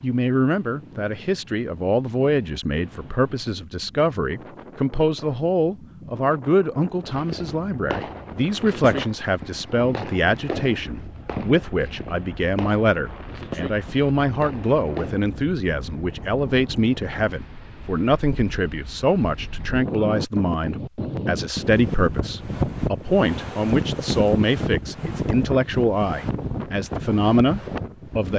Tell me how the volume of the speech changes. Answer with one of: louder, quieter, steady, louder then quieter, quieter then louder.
steady.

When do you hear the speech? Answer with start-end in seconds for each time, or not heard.
0.0-28.3.